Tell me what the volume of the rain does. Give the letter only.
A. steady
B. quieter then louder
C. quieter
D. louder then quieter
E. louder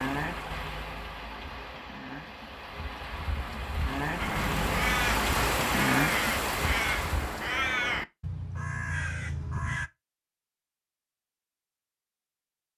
E.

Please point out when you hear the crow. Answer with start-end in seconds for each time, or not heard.
4.2-9.9.